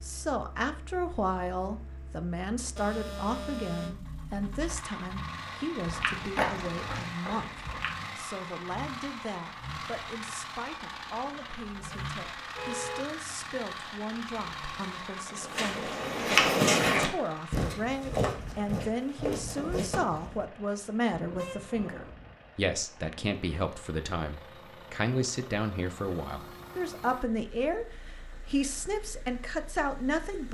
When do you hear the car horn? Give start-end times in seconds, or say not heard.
2.8-4.0, 12.5-13.7, 21.1-22.1.